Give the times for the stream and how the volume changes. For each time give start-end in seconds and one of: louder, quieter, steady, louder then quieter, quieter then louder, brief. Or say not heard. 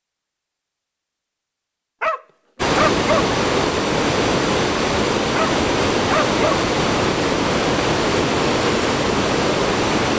2.5-10.1 steady.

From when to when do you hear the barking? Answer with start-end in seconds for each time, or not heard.
2.0-3.2, 5.3-6.6.